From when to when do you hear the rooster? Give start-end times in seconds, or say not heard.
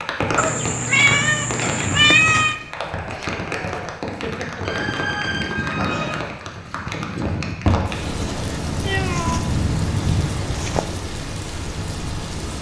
4.0-5.8.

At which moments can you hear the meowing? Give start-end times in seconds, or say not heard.
0.3-2.5, 4.7-6.2, 8.7-9.4.